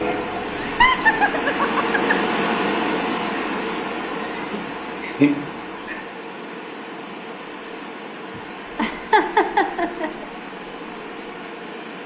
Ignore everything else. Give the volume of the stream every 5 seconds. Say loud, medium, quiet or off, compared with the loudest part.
loud, medium, medium.